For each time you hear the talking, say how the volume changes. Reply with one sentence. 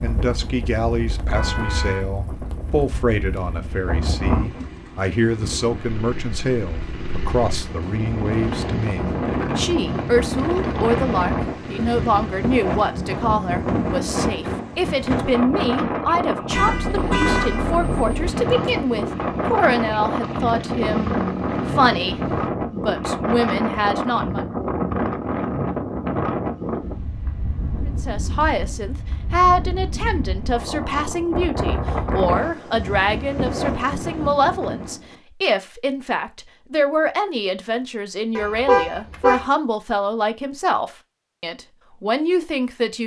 You can hear the talking from 0.0 to 24.4 s, at a steady volume; and from 27.9 to 43.0 s, at a steady volume.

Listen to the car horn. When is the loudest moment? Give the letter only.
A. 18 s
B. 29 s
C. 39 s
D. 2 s
C.